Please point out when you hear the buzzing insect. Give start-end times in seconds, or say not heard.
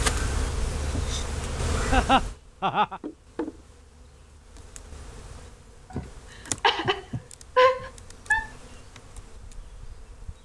0.0-10.4.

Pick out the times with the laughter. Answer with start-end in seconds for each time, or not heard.
1.9-3.0, 5.9-8.5.